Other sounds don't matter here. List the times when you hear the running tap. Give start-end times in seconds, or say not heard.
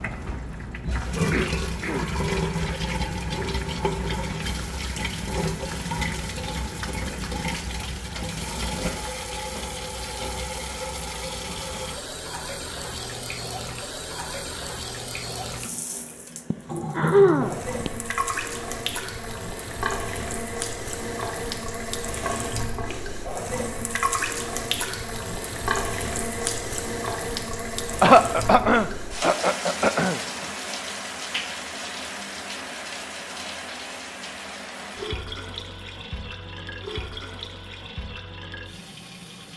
0.0-39.5.